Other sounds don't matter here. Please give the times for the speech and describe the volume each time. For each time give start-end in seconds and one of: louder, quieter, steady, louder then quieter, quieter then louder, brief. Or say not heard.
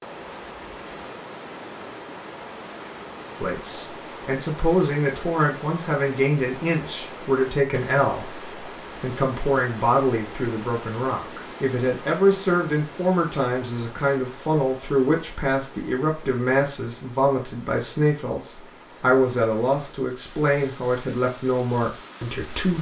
3.4-22.7 steady.